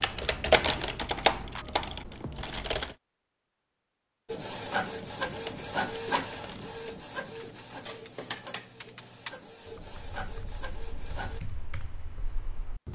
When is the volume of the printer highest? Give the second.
6 s.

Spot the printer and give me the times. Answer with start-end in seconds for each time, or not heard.
4.2-11.4.